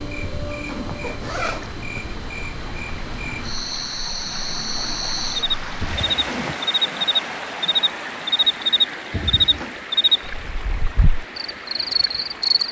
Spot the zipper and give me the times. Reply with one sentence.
The zipper can be heard from 0.2 to 1.9 s, from 5.8 to 6.6 s and from 9.1 to 9.8 s.